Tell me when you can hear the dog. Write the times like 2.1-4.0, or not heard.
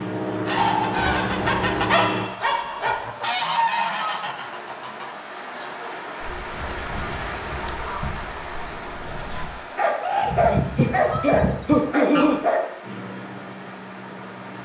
0.6-3.0, 9.8-12.6.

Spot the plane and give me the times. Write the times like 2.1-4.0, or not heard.
0.0-2.3, 12.8-14.6.